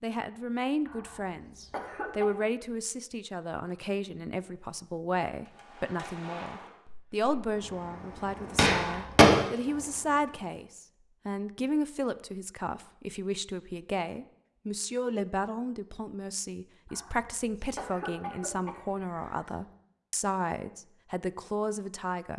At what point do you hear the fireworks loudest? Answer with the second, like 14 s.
9 s.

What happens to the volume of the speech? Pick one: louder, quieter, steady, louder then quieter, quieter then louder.
steady.